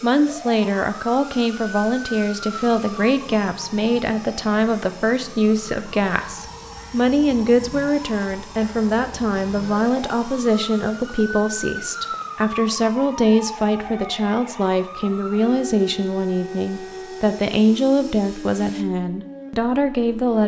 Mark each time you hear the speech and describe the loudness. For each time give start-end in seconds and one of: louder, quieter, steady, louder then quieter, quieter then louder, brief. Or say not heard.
0.0-20.4 steady.